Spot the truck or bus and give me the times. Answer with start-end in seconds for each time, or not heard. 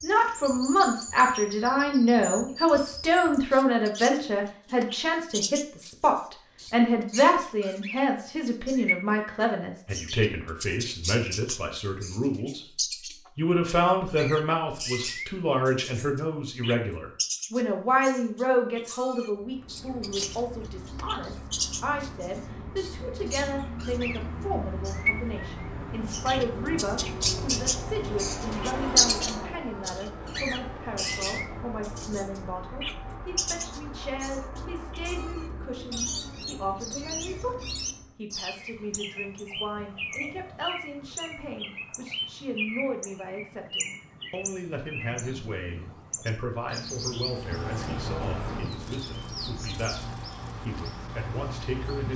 19.4-38.2, 47.2-52.1.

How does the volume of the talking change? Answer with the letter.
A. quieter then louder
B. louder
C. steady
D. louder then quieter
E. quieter
E.